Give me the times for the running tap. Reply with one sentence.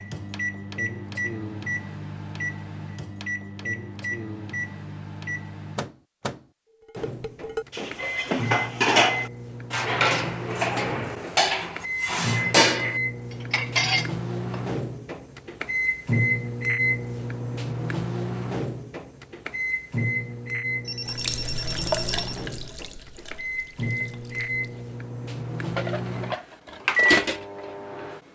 The running tap can be heard from 21.1 to 24.7 s.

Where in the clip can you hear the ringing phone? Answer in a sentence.
You can hear the ringing phone from 20.9 to 22.4 s.